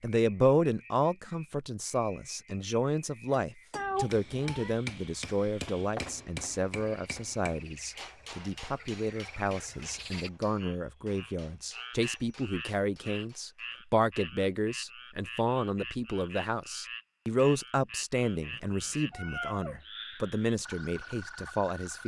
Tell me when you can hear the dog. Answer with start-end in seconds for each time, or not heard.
not heard.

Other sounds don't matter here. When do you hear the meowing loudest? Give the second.
4 s.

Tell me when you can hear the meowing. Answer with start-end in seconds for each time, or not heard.
3.8-4.8, 18.4-19.8.